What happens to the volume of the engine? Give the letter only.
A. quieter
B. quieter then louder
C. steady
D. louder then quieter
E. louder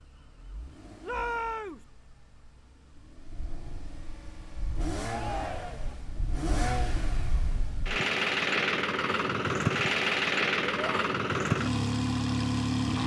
E.